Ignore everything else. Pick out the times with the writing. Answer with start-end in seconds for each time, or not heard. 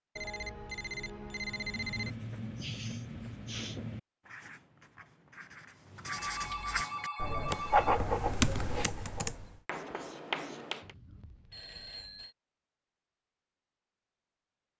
1.5-10.9.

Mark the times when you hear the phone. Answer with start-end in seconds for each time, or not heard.
0.1-2.1, 6.0-8.0, 10.8-12.3.